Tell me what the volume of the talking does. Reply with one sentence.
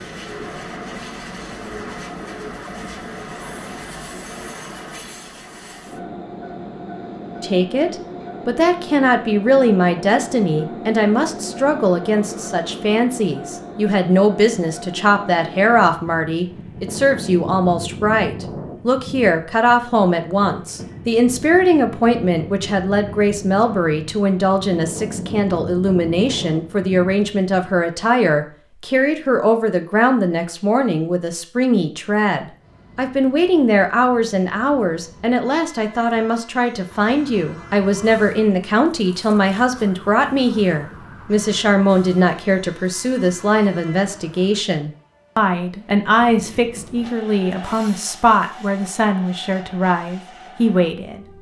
The volume of the talking stays about the same.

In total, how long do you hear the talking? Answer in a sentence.
The talking can be heard for 44 seconds in total.